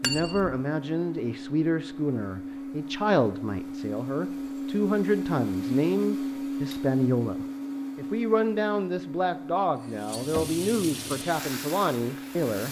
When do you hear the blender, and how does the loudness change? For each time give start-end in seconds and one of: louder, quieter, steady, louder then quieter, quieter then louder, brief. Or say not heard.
0.0-12.6 louder then quieter.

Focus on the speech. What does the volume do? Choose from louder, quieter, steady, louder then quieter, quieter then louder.
steady.